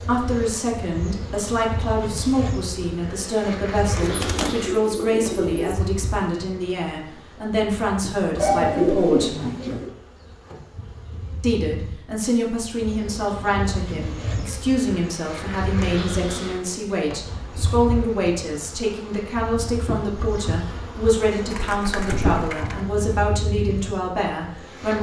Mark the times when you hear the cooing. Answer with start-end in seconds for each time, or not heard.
4.0-5.8, 8.3-9.9, 21.5-22.8.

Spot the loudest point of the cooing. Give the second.
9 s.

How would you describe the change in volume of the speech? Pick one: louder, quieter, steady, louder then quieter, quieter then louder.
steady.